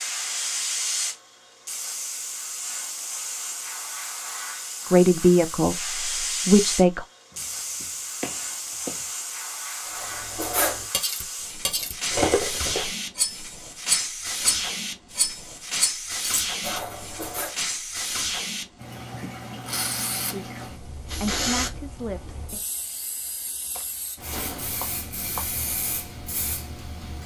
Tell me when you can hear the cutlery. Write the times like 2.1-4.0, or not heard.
9.9-17.5.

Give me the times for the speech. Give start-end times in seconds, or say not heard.
4.9-7.0, 20.2-22.6.